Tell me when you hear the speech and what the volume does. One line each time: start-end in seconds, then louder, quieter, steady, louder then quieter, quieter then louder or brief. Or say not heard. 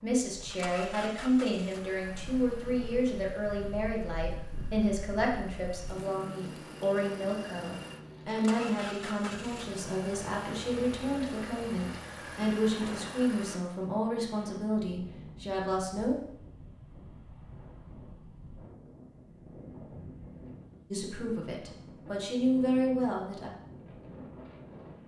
0.0-16.1 steady
20.9-23.5 brief.